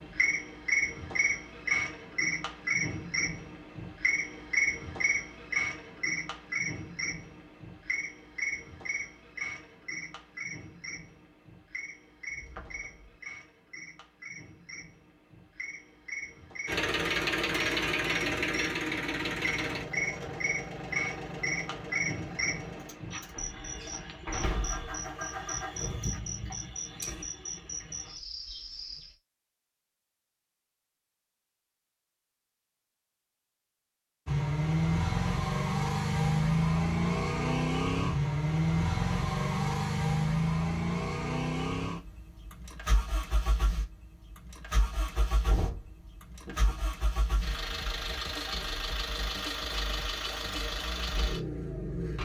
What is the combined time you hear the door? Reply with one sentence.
The door can be heard for 4 seconds in total.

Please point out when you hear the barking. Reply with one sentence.
You can't hear the barking here.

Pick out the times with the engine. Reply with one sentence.
The engine can be heard from 16.6 to 27.2 s and from 34.2 to 52.1 s.